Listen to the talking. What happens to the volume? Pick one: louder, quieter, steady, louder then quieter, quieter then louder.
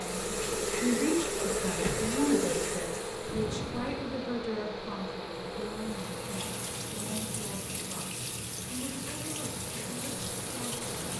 quieter.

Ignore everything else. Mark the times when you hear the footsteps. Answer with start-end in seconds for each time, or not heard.
not heard.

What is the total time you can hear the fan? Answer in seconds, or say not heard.
11 s.